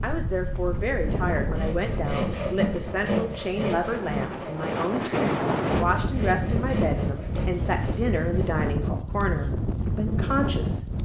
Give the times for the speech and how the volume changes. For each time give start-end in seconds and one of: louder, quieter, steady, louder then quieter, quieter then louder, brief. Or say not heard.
0.0-10.8 steady.